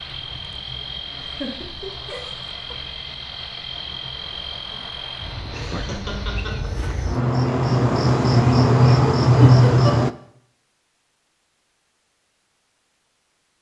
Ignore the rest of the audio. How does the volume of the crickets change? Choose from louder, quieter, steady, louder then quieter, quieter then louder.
louder.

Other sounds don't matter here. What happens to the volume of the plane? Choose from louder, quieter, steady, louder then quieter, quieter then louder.
steady.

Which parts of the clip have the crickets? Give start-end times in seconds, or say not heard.
0.2-10.1.